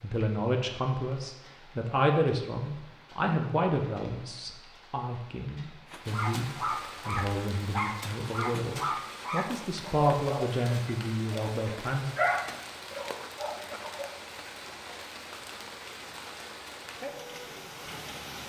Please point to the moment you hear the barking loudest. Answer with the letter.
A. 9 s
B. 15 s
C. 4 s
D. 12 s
D.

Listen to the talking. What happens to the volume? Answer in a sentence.
The volume of the talking goes down, then up.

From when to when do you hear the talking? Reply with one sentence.
The talking can be heard from 0.0 to 12.1 s.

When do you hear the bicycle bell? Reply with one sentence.
You can't hear the bicycle bell here.